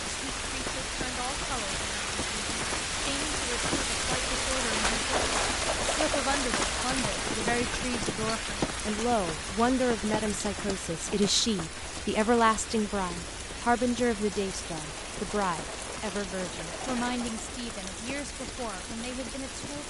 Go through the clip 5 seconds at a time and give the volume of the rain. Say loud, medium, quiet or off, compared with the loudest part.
loud, loud, medium, medium.